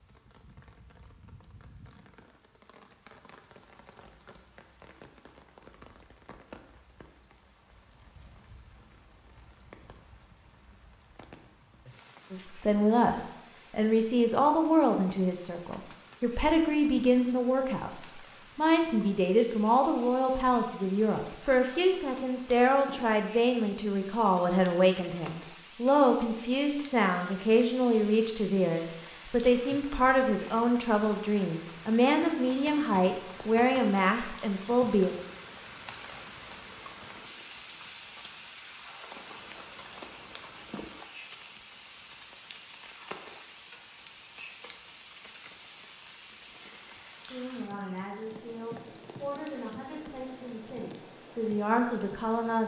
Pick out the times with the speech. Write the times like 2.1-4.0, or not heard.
12.3-35.1, 47.2-52.6.